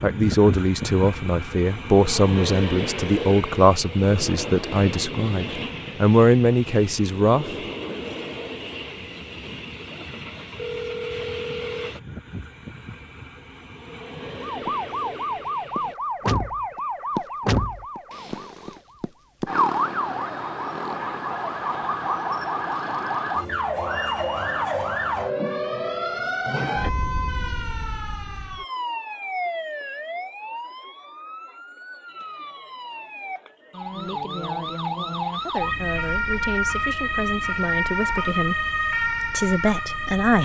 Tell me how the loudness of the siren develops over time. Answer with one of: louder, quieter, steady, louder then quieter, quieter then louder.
quieter then louder.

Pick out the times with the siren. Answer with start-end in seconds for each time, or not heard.
14.4-40.4.